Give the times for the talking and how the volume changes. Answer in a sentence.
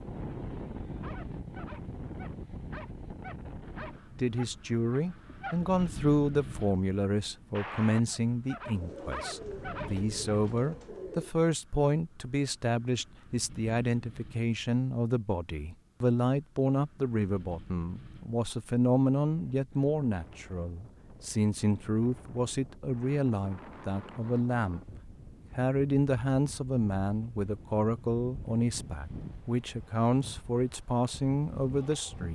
You can hear the talking from 4.2 to 32.2 s, at a steady volume.